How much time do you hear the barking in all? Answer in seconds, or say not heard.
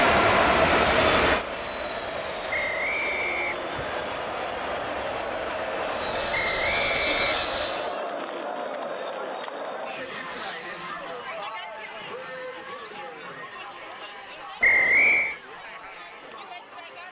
not heard.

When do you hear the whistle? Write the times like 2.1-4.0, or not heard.
2.5-4.0, 6.3-7.3, 14.6-15.3.